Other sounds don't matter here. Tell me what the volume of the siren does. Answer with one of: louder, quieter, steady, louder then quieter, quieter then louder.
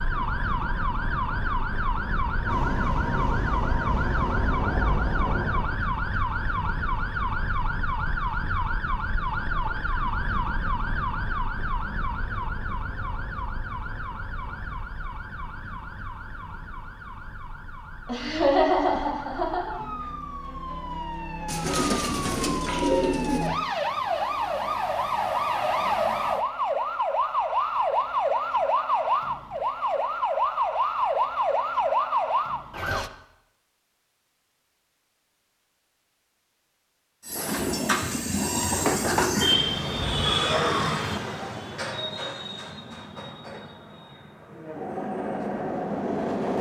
quieter then louder.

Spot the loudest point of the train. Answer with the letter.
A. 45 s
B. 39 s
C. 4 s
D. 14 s
B.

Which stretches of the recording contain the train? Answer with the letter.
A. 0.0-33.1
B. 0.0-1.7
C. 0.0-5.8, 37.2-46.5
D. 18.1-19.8
C.